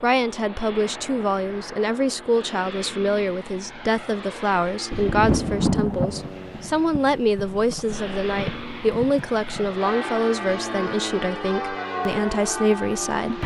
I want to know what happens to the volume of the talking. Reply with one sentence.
The loudness of the talking stays about the same.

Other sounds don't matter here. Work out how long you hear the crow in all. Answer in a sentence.
The crow can't be heard in this clip.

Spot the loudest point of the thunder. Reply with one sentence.
The volume of the thunder peaks at 6 seconds.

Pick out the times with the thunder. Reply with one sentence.
The thunder can be heard from 4.9 to 9.7 s.